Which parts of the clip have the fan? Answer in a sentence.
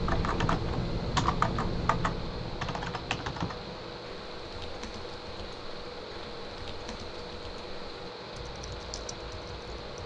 You can hear the fan from 0.0 to 10.0 s.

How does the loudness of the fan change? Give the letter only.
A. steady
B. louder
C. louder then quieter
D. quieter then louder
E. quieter
A.